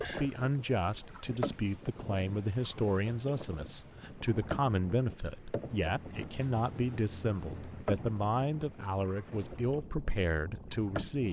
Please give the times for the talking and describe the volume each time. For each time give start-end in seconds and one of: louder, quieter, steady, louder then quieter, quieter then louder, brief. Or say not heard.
0.0-11.2 steady.